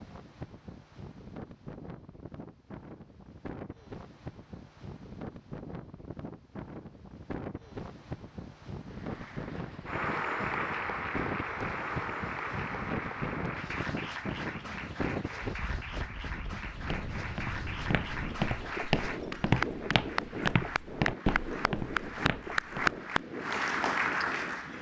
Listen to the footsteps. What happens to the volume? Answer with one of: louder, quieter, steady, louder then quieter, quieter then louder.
louder then quieter.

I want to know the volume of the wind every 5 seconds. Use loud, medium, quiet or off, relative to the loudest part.
medium, loud, loud, loud, loud.